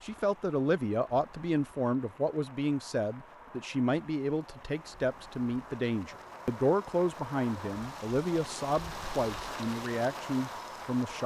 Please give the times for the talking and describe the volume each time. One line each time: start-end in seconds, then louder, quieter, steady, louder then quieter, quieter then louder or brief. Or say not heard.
0.0-11.2 steady.